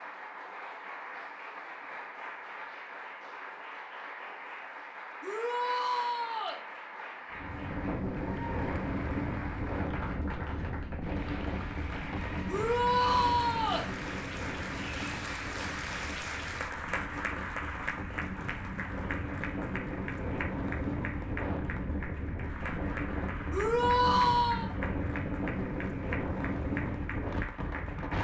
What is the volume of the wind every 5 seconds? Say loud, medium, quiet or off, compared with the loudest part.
off, loud, loud, medium, loud, loud.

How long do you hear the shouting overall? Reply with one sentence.
The shouting can be heard for 4 seconds in total.